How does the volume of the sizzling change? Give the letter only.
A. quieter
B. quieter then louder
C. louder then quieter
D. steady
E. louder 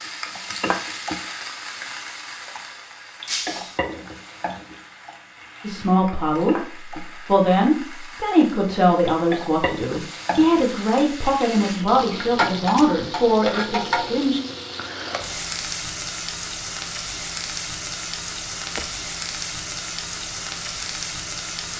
B.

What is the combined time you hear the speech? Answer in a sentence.
You can hear the speech for 9 seconds altogether.